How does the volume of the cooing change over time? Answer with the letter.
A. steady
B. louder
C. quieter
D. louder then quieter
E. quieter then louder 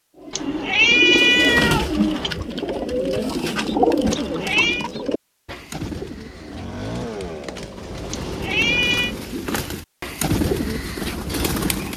E.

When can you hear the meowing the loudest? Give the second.
1 s.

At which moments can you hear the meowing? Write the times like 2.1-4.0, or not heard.
0.3-2.4, 4.1-4.8, 8.1-9.2.